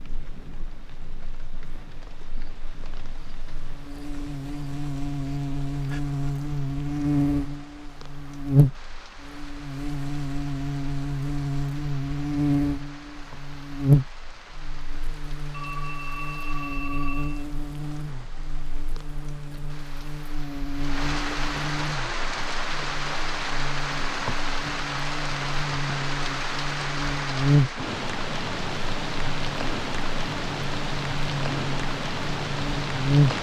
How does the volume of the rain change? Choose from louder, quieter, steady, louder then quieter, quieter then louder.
louder.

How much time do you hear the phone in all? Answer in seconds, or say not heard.
2 s.